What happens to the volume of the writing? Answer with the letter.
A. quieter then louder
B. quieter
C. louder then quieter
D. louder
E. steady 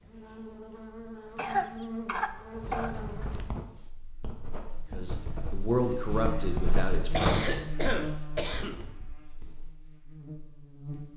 C.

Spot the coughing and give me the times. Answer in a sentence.
The coughing can be heard from 1.4 to 3.0 s and from 7.1 to 8.8 s.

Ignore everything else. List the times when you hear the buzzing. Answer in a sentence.
The buzzing can be heard from 0.0 to 11.1 s.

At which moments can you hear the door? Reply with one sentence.
The door can be heard from 2.6 to 3.5 s and from 7.2 to 7.6 s.